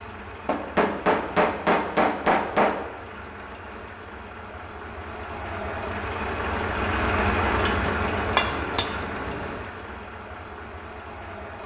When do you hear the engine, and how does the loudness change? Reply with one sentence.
The engine can be heard from 0.0 to 11.6 s, getting louder then quieter.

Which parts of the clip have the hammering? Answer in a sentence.
The hammering can be heard from 0.5 to 2.8 s and from 7.6 to 9.5 s.